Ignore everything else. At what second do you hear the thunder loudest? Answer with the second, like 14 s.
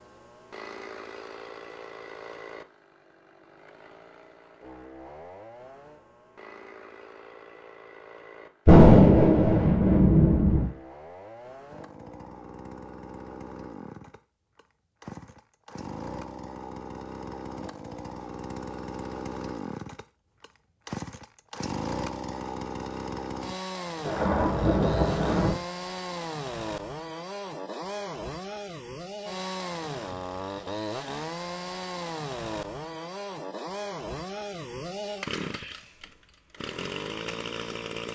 9 s.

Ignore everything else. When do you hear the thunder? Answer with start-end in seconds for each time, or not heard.
8.7-10.7, 24.1-25.6.